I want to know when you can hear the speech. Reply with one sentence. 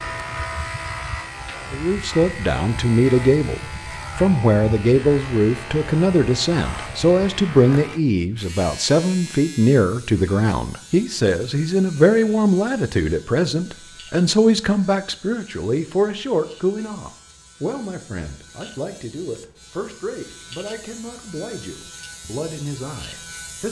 You can hear the speech from 1.7 to 23.6 s.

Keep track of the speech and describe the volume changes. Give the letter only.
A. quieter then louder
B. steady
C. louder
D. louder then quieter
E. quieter
E.